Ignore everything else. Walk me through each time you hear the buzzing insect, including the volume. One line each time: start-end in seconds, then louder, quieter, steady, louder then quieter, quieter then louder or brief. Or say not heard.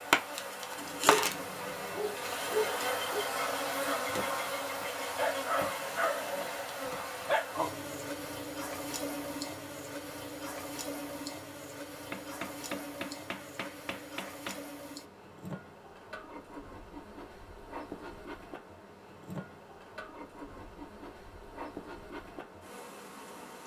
0.0-23.6 quieter.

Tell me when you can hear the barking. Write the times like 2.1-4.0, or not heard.
0.8-7.5.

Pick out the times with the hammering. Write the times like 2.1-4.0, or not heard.
12.1-14.7.